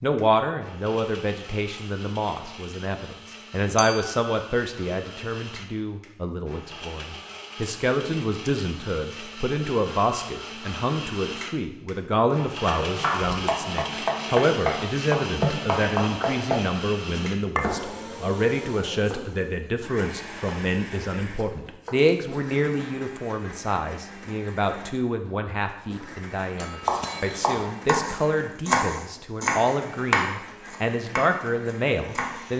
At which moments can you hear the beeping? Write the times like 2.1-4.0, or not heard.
not heard.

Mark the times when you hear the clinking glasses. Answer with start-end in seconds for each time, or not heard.
3.8-4.2, 26.6-27.5.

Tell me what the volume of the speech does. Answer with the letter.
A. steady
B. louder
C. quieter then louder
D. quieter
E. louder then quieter
A.